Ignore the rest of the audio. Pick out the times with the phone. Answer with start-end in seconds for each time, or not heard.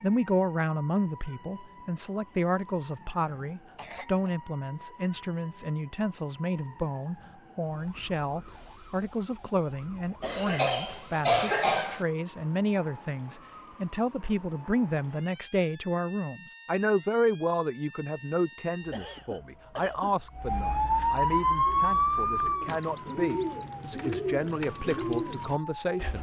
not heard.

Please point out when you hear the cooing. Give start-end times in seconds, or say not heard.
21.6-26.1.